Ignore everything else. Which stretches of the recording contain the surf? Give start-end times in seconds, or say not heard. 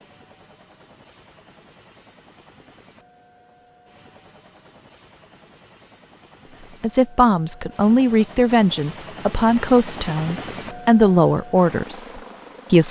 not heard.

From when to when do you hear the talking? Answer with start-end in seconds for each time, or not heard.
6.8-12.8.